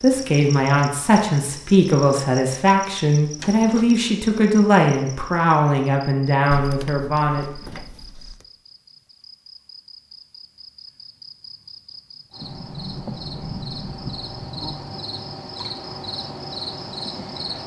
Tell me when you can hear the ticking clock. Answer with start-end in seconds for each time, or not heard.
not heard.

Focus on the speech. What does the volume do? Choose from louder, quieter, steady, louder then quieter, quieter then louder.
steady.